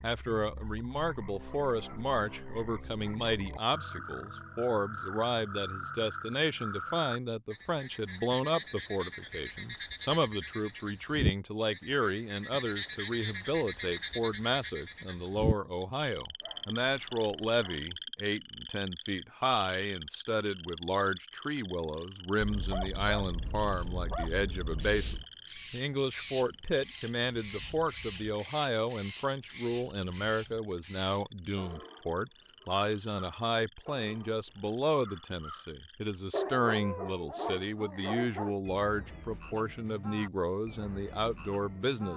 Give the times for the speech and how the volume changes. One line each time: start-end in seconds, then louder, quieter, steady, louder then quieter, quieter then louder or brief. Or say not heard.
0.0-42.1 steady.